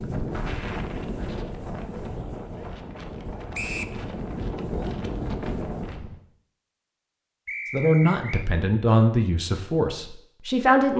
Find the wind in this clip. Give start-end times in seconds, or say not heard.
0.0-6.2.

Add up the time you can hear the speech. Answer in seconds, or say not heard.
3 s.